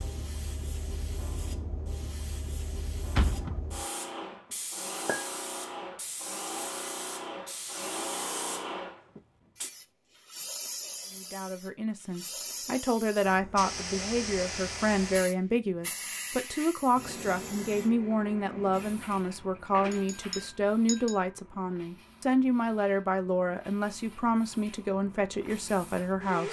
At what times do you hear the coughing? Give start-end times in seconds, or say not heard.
not heard.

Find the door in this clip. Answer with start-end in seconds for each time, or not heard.
3.1-3.6, 18.5-20.4.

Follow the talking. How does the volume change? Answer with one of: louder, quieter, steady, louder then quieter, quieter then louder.
steady.